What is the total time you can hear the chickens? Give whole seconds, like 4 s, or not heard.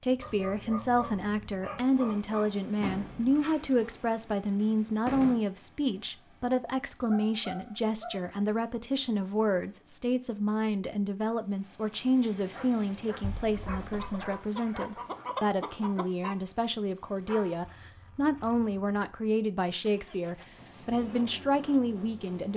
3 s.